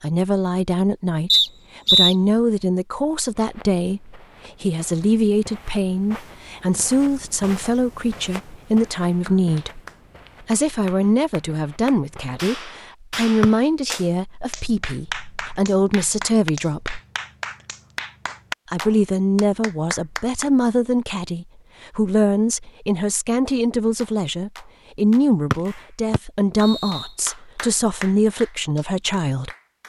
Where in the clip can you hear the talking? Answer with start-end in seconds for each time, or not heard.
0.0-9.8, 10.4-17.0, 18.7-29.5.